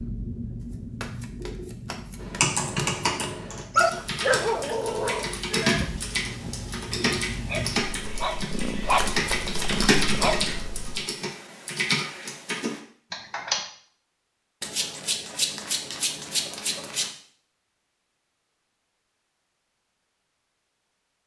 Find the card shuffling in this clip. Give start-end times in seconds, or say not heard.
1.0-3.0, 8.8-10.7, 14.6-17.1.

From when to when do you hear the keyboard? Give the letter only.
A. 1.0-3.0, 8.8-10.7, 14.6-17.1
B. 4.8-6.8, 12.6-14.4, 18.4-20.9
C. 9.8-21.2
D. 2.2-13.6
D.